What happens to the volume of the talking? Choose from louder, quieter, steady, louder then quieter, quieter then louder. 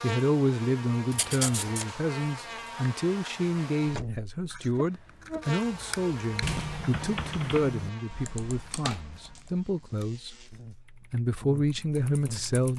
steady.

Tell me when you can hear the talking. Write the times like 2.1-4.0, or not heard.
0.0-12.7.